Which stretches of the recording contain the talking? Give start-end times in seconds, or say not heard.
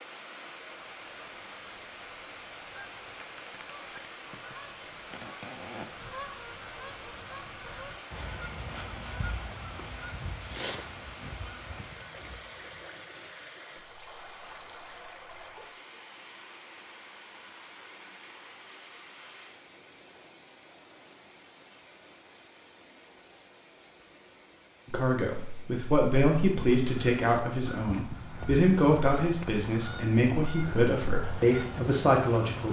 24.9-32.6.